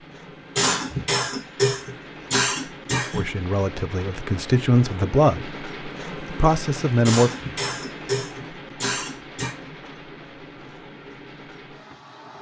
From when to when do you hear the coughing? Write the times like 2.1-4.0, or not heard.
0.6-3.2, 7.0-9.6.